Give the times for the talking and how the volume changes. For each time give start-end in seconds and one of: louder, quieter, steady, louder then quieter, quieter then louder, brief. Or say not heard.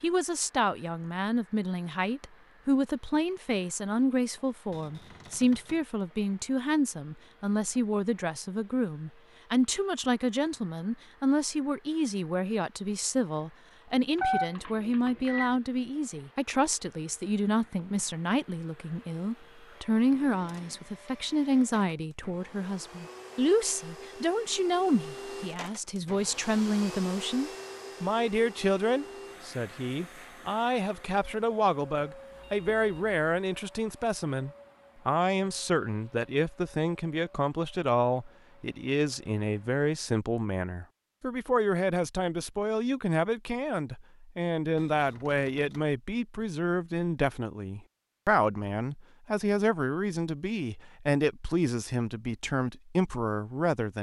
0.0-53.9 steady.